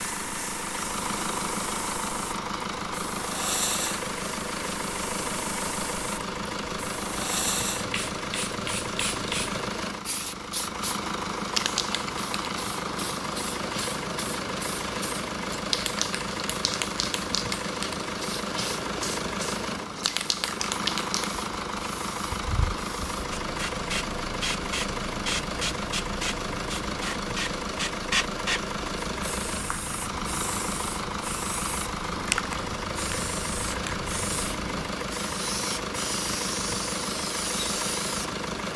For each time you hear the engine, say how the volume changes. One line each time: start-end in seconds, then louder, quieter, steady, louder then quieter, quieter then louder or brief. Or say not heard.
0.0-38.7 steady.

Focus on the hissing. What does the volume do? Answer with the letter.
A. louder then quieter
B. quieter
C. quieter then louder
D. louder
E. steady
E.